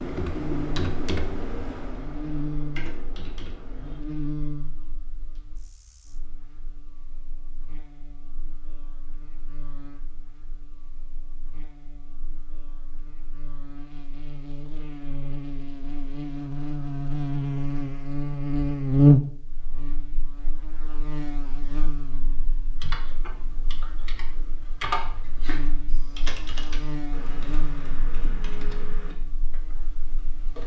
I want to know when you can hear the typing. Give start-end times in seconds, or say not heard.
0.0-4.0, 22.8-30.6.